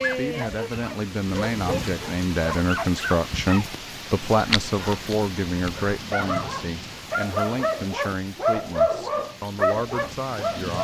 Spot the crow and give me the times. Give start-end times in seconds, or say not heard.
not heard.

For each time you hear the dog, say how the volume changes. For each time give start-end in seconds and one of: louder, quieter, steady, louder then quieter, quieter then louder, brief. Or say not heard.
0.0-10.7 louder.